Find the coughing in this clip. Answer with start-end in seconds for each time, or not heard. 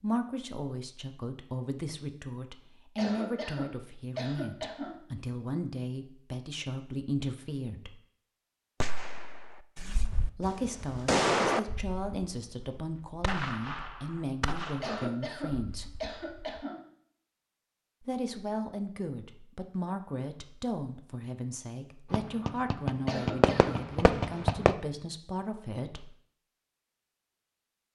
3.0-5.0, 14.8-16.8, 23.1-23.9.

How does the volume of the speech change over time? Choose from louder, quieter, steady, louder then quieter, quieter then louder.
steady.